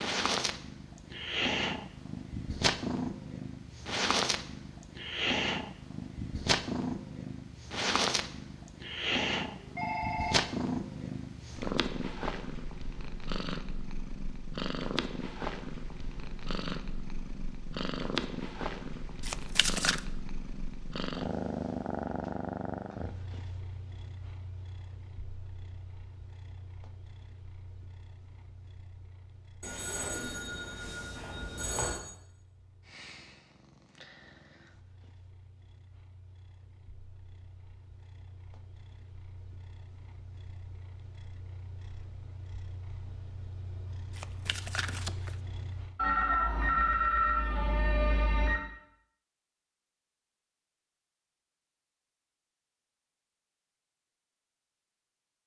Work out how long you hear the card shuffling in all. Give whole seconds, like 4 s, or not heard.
2 s.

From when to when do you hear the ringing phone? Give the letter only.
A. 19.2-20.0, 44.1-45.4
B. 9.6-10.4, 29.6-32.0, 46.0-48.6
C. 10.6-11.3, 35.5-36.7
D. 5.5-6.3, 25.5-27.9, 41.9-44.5
B.